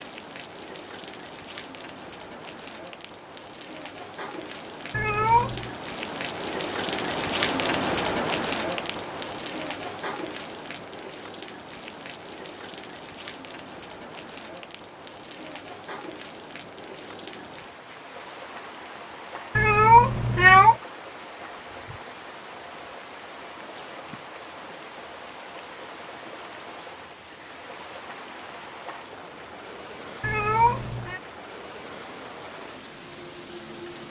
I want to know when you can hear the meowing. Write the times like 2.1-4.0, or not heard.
4.9-5.7, 19.6-20.8, 30.2-31.2.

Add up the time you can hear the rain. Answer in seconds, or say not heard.
34 s.